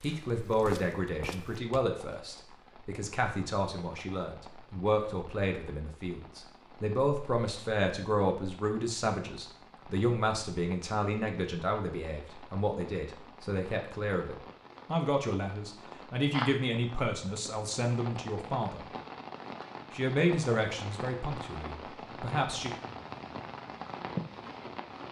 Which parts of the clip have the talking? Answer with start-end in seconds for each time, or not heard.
0.0-18.9, 19.9-22.7.